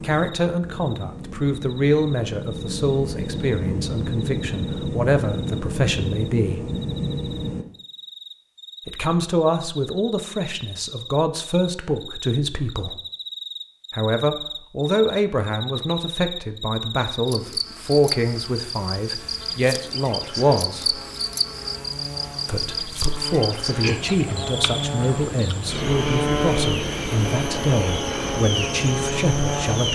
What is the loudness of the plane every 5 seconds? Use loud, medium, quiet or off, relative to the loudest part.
loud, loud, off, off, medium, loud.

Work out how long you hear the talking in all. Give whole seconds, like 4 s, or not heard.
25 s.